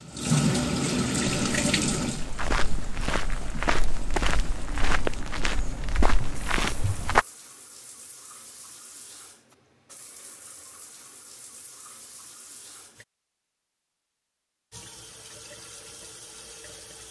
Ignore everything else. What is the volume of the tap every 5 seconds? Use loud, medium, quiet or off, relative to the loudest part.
loud, quiet, quiet, quiet.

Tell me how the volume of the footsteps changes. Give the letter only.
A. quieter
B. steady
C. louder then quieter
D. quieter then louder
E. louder
B.